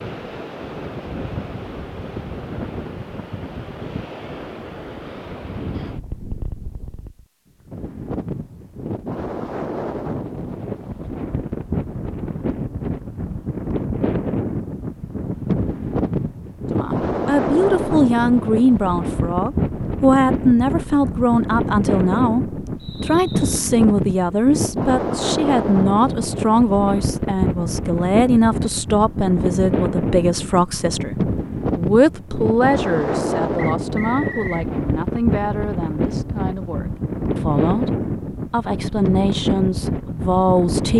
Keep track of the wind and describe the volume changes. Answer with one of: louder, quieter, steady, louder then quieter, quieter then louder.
louder.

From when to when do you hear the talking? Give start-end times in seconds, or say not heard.
16.7-40.9.